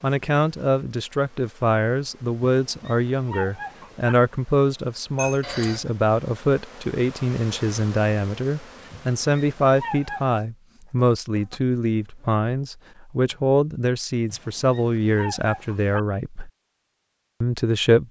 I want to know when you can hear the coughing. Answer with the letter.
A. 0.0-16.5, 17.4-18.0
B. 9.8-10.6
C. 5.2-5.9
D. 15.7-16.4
C.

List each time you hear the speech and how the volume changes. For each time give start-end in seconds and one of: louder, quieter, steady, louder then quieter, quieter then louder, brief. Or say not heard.
0.0-16.5 steady
17.4-18.0 brief.